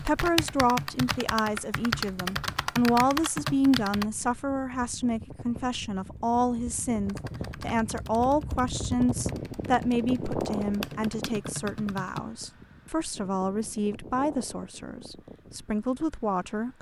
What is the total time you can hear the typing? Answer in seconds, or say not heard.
9 s.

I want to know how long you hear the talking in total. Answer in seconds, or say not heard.
17 s.